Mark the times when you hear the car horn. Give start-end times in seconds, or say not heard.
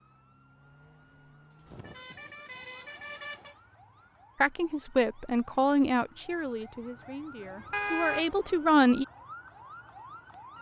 1.7-3.5, 7.7-8.2.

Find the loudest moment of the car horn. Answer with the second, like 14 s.
8 s.